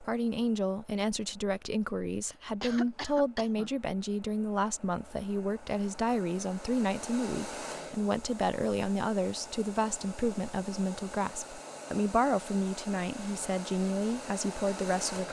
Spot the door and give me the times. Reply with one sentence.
You can't hear the door here.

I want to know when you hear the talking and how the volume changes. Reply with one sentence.
The talking can be heard from 0.0 to 15.2 s, at a steady volume.